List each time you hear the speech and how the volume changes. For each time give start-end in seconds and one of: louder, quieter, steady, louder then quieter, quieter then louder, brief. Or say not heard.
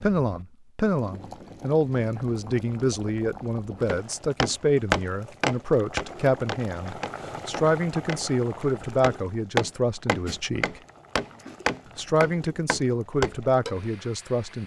0.0-10.8 steady
11.9-14.6 brief.